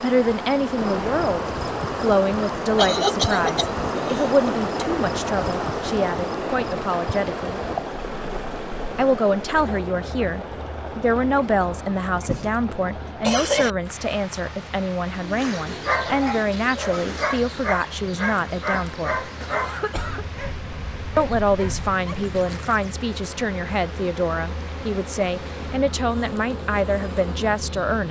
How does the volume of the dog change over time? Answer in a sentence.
The loudness of the dog goes down.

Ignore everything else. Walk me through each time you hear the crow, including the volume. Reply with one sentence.
The crow can't be heard in this clip.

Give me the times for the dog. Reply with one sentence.
The dog can be heard from 15.1 to 22.1 s.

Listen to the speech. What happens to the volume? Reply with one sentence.
The volume of the speech stays about the same.